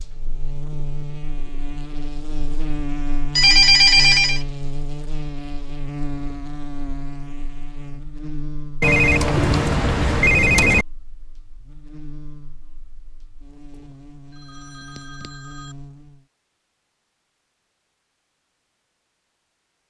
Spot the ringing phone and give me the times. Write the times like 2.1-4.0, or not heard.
3.4-4.4, 8.8-10.8, 13.8-15.8.